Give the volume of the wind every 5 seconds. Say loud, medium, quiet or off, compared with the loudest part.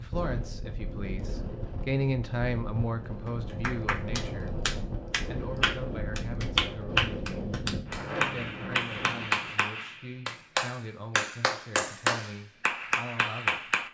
loud, loud, off.